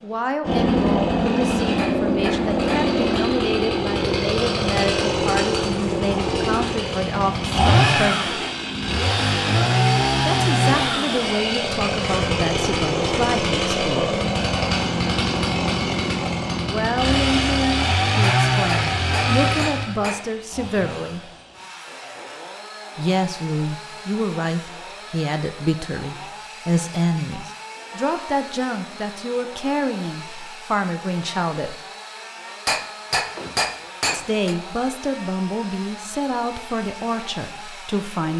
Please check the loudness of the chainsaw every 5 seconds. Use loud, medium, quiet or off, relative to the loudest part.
loud, loud, loud, loud, quiet, quiet, quiet, quiet.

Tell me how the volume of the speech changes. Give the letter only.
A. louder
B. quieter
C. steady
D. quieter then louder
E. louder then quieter
C.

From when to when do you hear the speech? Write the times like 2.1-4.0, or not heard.
0.0-8.4, 10.3-14.2, 16.6-21.3, 22.9-31.8, 34.1-38.3.